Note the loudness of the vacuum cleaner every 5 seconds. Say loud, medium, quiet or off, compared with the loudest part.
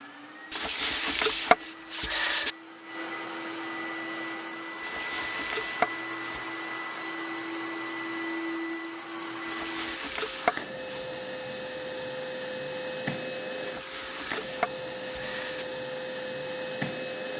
medium, loud, loud, loud.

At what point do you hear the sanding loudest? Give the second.
1 s.